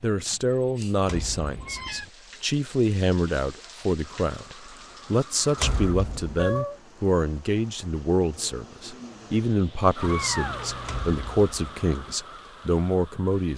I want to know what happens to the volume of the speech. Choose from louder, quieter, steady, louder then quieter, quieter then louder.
steady.